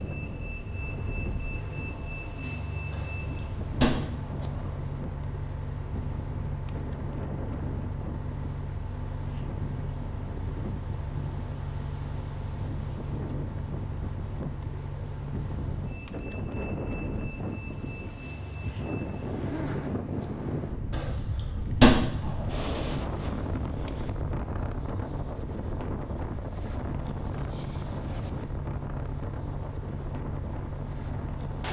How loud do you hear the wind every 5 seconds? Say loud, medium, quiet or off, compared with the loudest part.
medium, medium, medium, loud, loud, loud, medium.